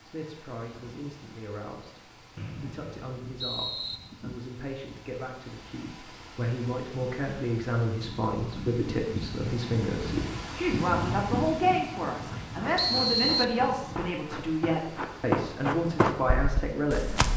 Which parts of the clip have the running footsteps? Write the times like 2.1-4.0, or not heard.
12.2-17.3.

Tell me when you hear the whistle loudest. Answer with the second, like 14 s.
13 s.